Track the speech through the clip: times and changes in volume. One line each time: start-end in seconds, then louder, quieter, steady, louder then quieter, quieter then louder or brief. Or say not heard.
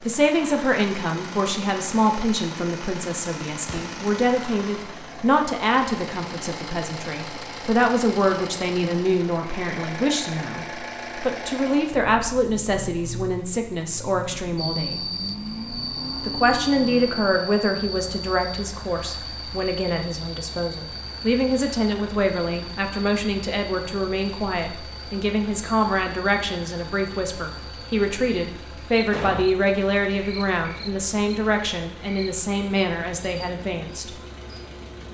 0.0-15.0 steady
16.2-34.1 steady.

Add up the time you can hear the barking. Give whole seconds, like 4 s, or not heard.
not heard.